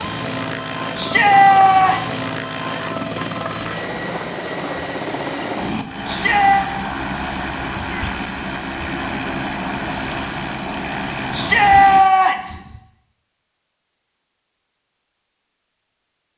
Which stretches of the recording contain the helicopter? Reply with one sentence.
The helicopter can be heard from 0.0 to 12.1 s.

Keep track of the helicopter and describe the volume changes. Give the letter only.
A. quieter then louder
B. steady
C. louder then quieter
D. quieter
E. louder
B.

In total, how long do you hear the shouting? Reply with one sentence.
You can hear the shouting for 3 seconds altogether.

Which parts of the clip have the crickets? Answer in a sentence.
The crickets can be heard from 0.0 to 12.8 s.